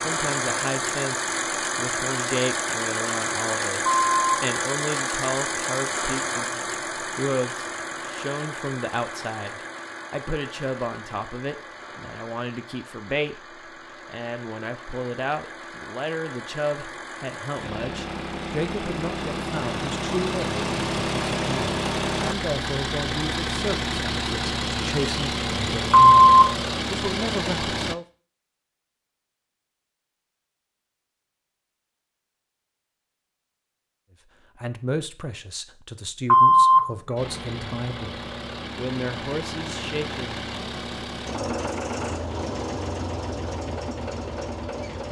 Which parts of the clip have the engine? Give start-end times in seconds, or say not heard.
0.0-27.9, 37.1-45.0.